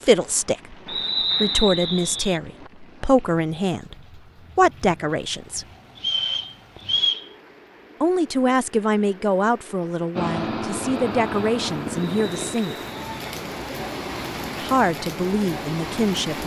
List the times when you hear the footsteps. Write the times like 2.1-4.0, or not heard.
not heard.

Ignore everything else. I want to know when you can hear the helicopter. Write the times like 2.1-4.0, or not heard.
10.2-12.6.